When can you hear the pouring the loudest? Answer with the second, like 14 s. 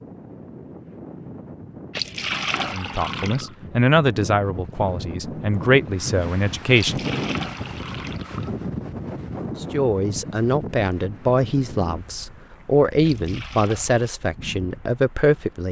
2 s.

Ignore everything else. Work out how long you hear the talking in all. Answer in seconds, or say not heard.
10 s.